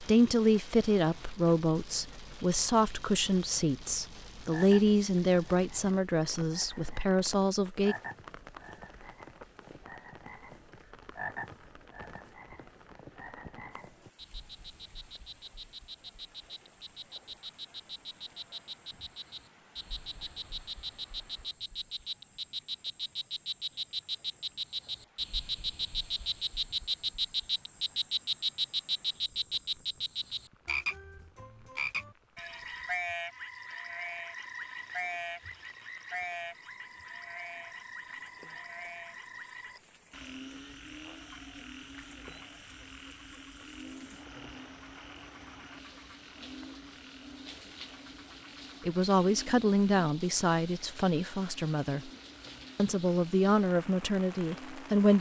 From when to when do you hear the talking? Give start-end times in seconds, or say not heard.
0.0-8.0, 48.9-52.1, 52.8-55.1.